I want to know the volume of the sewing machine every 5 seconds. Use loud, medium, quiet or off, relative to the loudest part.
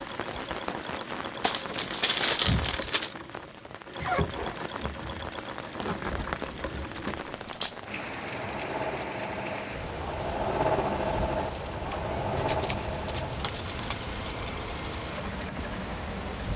medium, medium, loud, medium.